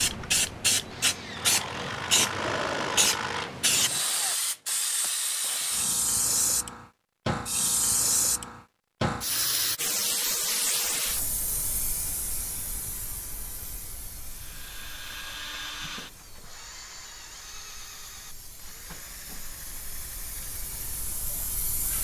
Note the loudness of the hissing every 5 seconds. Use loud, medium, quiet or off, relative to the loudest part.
loud, loud, medium, quiet, quiet.